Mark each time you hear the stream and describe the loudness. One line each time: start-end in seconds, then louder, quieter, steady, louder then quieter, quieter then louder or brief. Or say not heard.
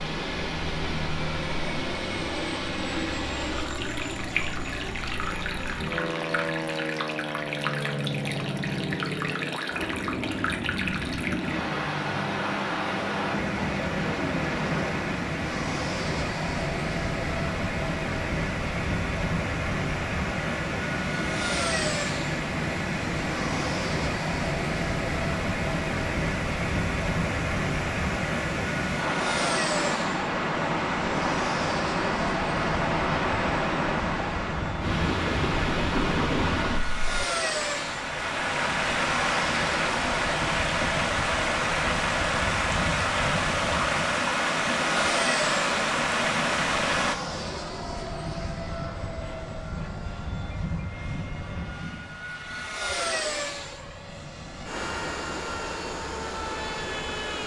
0.0-47.1 louder.